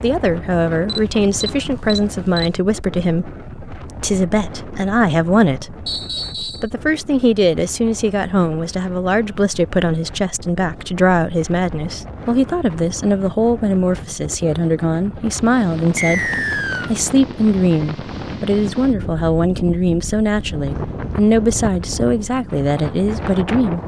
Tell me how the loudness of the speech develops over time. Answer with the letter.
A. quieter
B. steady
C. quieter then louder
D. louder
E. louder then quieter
B.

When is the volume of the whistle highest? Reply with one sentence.
The volume of the whistle peaks at 16 seconds.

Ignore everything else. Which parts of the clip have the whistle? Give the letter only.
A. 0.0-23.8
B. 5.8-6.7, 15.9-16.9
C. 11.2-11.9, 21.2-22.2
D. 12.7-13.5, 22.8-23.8
B.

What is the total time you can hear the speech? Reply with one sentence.
You can hear the speech for 24 seconds altogether.